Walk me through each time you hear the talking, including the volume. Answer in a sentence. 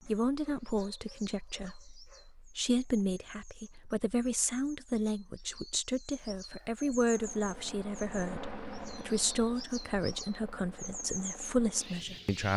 You can hear the talking from 0.1 to 12.5 s, at a steady volume.